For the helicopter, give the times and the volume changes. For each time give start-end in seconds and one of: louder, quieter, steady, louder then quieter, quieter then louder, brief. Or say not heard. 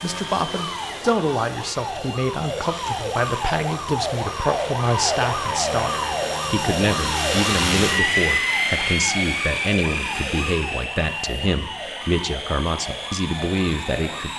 0.0-14.3 louder then quieter.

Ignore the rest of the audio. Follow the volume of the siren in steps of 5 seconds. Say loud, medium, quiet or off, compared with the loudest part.
loud, loud, medium.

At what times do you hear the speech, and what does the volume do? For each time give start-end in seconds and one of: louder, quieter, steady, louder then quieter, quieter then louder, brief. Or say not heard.
0.0-14.3 steady.